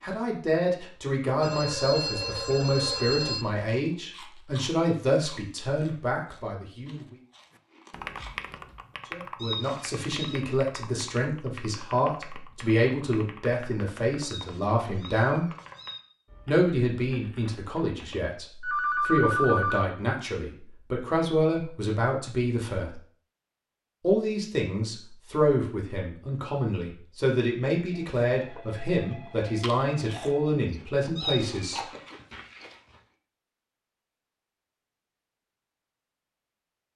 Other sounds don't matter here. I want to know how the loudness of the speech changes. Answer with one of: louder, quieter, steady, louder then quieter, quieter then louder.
steady.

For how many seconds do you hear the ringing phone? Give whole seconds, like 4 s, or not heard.
6 s.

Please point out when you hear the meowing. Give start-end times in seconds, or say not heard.
9.3-10.4, 14.2-16.0, 31.1-31.8.